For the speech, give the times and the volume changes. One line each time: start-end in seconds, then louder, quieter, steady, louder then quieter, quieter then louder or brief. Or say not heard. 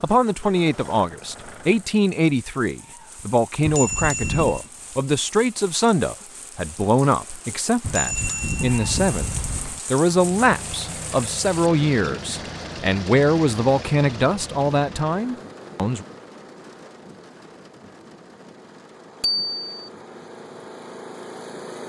0.0-16.1 steady.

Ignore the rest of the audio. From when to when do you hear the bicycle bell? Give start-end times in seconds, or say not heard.
3.6-4.7, 7.8-9.8, 19.2-19.9.